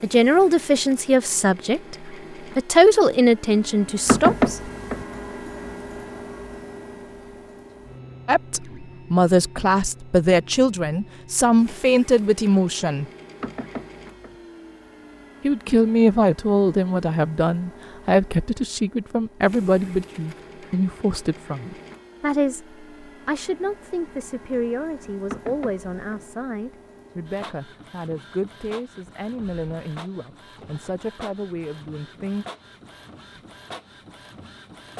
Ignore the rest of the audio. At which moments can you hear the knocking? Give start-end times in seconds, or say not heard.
4.0-5.0, 13.4-14.3, 25.3-26.2.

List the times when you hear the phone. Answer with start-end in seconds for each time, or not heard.
not heard.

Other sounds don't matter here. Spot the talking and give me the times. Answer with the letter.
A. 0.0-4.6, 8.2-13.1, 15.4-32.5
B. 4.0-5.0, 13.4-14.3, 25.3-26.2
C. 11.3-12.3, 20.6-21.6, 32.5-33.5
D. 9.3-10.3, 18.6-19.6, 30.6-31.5
A.